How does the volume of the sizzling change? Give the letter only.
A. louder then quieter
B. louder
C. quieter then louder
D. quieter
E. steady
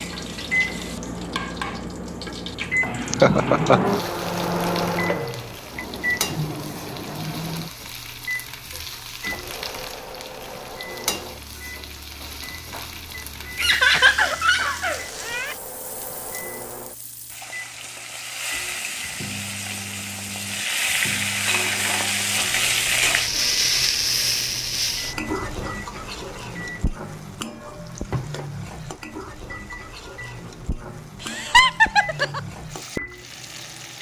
A.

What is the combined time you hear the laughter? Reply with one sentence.
You can hear the laughter for 4 seconds altogether.